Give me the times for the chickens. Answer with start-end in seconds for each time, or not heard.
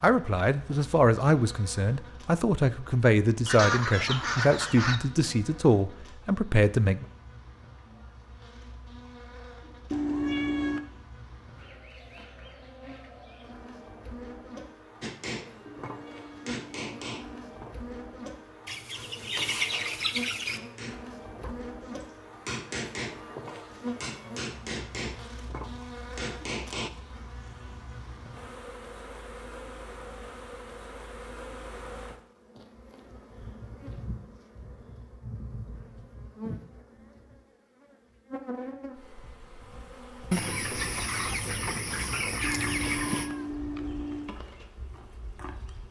3.5-5.0, 18.6-20.6, 40.3-43.3.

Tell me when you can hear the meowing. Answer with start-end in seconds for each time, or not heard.
9.9-10.8, 15.8-17.4, 42.4-44.4.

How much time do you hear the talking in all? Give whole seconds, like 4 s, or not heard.
7 s.